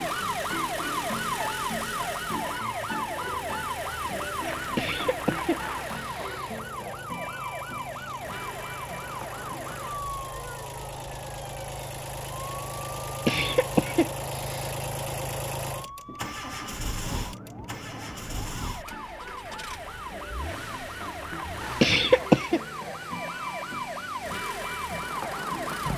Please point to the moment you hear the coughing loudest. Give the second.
22 s.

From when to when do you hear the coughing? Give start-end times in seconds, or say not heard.
4.8-6.6, 13.2-14.7, 21.8-22.6.